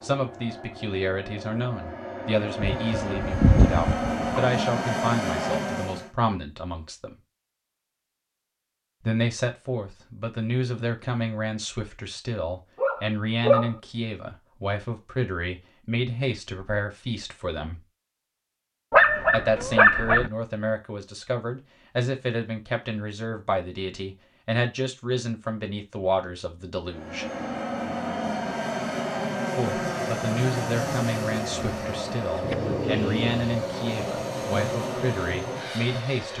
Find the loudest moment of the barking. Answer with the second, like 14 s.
19 s.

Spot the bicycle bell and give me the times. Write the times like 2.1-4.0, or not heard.
not heard.